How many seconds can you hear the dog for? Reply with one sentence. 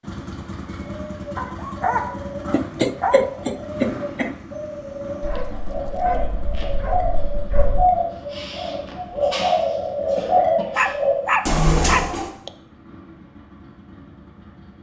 The dog can be heard for 6 seconds in total.